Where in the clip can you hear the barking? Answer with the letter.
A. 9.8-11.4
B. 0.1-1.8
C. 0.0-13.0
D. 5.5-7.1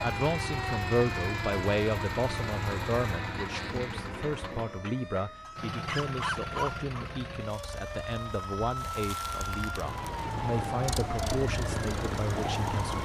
D.